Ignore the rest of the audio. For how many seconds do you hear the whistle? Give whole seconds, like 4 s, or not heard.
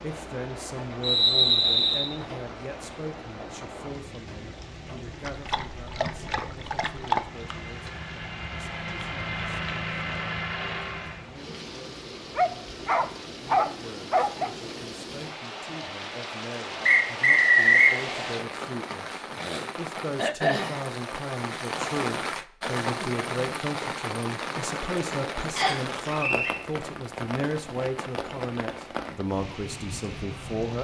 3 s.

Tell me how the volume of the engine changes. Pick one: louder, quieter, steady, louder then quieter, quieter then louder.
louder.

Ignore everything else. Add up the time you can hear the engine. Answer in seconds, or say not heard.
4 s.